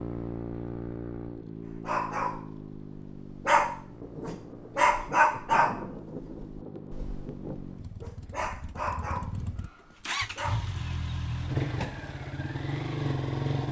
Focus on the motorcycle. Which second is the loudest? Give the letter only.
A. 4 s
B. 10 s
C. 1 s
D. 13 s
D.